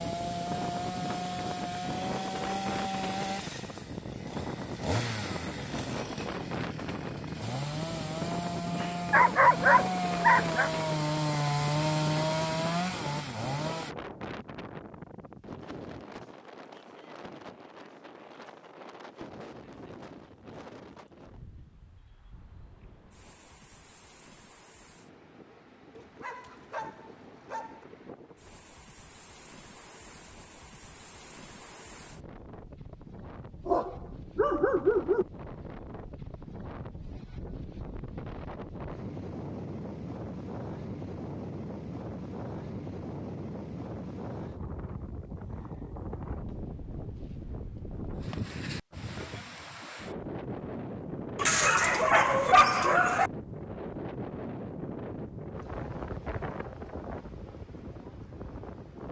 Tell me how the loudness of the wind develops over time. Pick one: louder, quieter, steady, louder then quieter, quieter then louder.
quieter then louder.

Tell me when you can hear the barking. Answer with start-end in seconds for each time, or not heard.
8.8-10.7, 25.9-27.9, 33.6-35.2, 51.4-53.3.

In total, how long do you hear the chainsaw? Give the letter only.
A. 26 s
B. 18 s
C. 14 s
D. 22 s
C.